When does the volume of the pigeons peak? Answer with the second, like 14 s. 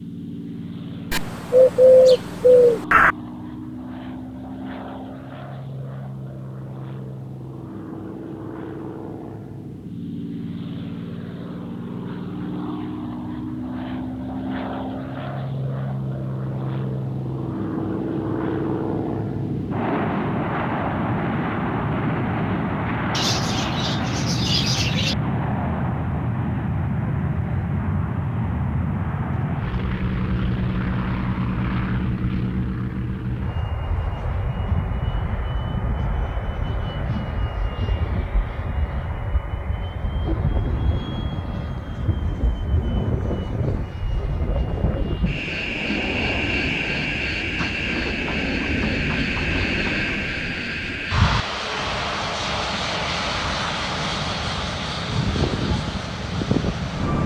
2 s.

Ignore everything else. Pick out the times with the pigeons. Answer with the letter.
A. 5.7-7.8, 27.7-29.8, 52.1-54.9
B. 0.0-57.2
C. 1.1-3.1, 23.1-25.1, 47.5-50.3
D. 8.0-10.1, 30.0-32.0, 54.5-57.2
C.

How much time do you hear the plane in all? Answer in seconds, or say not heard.
57 s.